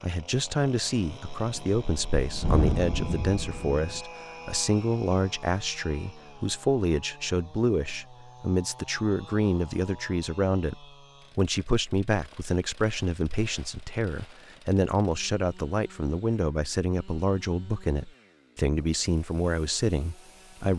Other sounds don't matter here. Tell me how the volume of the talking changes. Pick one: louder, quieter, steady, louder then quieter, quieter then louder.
steady.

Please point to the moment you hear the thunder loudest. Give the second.
3 s.